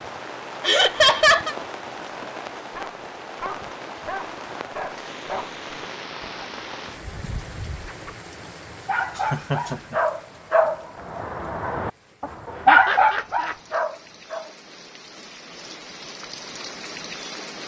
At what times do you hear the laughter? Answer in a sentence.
You can hear the laughter from 0.6 to 1.6 s, from 9.2 to 9.9 s and from 12.7 to 13.6 s.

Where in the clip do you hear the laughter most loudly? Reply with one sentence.
The volume of the laughter peaks at 1 second.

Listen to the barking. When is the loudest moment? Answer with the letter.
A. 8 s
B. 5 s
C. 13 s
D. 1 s
C.